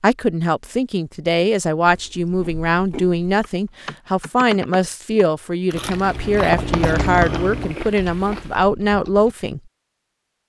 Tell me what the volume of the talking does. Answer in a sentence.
The volume of the talking stays about the same.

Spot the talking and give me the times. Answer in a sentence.
The talking can be heard from 0.0 to 9.6 s.